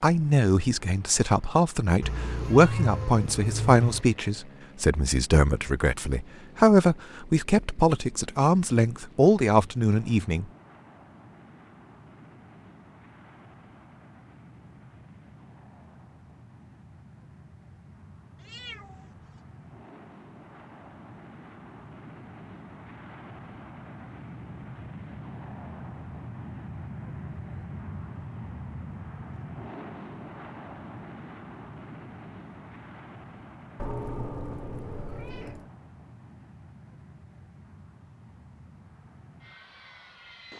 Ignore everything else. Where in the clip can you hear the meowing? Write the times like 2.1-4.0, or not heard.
2.0-4.0, 18.4-19.1, 33.8-35.7.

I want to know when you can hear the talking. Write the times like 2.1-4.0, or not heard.
0.0-10.4.